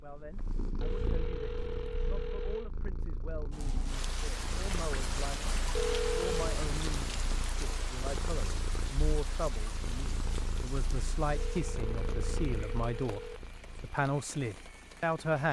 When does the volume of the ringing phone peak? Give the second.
6 s.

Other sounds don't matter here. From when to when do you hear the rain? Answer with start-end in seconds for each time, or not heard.
3.5-15.4.